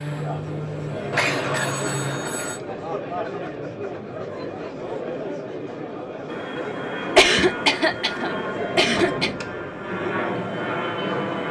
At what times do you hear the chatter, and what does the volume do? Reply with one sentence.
The chatter can be heard from 0.0 to 11.4 s, at a steady volume.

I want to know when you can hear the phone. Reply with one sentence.
You can hear the phone from 1.1 to 2.6 s and from 8.2 to 9.4 s.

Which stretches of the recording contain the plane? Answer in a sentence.
You can hear the plane from 0.0 to 2.2 s and from 6.2 to 11.4 s.